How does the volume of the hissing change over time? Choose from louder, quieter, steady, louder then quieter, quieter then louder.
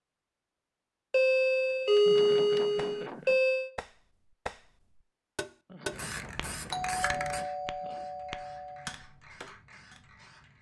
quieter.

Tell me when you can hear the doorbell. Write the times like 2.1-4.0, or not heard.
1.1-3.7, 6.7-8.8.